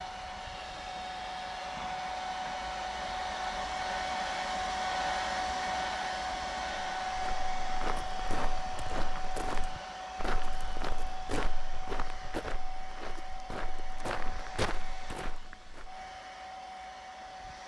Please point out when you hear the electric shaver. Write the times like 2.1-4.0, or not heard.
not heard.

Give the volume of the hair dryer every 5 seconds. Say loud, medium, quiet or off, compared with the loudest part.
loud, loud, medium, medium.